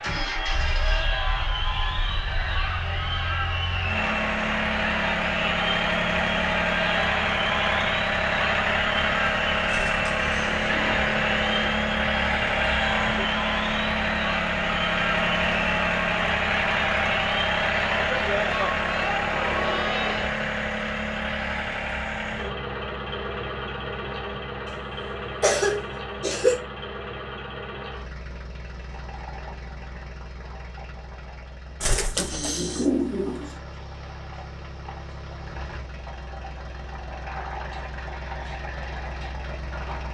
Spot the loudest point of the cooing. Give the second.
33 s.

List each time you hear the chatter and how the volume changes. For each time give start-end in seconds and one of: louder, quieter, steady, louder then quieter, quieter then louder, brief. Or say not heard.
0.0-20.4 steady.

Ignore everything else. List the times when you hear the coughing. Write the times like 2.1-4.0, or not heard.
24.9-26.6.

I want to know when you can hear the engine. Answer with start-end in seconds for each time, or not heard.
0.0-40.0.